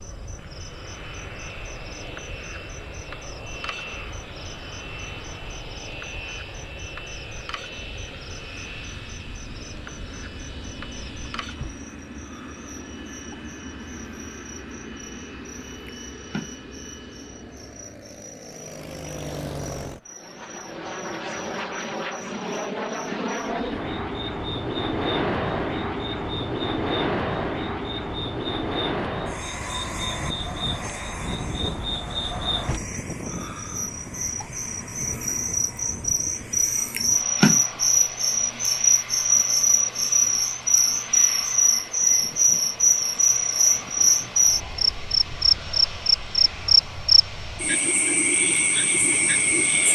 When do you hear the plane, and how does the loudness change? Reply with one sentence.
The plane can be heard from 0.0 to 49.8 s, getting louder then quieter.